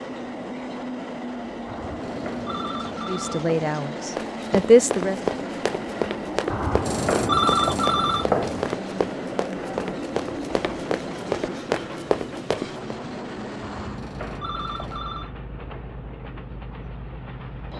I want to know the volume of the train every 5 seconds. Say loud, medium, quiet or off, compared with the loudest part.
loud, loud, loud, medium.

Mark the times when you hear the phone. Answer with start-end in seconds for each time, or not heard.
1.6-3.5, 6.5-8.7, 13.6-15.3.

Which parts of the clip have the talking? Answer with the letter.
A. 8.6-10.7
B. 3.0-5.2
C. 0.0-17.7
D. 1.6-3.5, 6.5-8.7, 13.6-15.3
B.